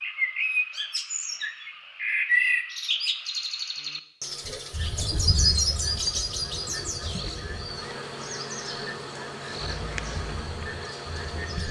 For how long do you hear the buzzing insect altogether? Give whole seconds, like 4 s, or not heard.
7 s.